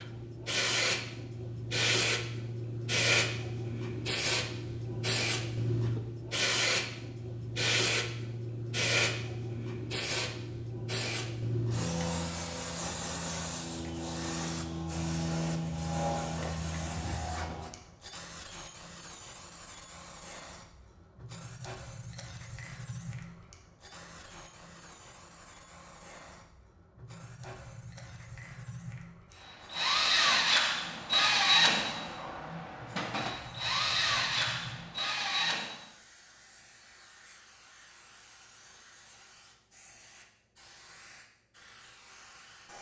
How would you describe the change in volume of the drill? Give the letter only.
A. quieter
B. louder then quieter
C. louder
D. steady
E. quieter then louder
E.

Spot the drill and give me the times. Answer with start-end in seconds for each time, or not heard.
29.3-35.8.